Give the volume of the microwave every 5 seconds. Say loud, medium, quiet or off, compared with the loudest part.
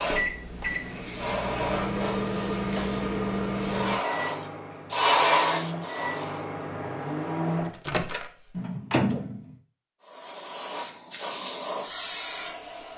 loud, loud, off.